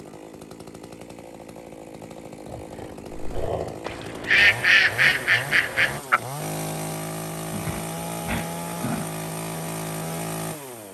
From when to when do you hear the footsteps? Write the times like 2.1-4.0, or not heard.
not heard.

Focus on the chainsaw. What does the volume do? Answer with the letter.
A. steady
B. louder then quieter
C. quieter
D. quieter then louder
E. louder
E.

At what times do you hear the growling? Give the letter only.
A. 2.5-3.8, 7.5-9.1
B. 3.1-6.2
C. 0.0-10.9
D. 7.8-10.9
A.